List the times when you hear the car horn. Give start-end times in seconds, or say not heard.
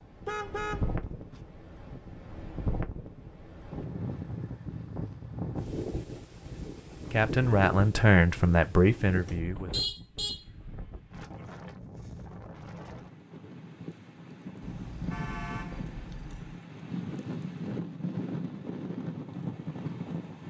0.2-1.4, 9.2-10.4, 14.6-16.6.